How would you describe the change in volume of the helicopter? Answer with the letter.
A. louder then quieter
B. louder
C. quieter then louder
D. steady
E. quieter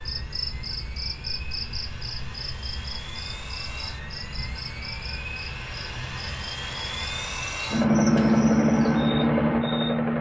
B.